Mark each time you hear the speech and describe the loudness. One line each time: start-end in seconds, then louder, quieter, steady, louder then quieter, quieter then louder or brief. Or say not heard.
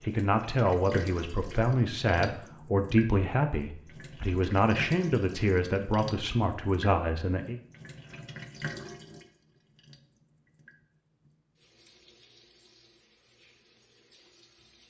0.0-7.6 steady.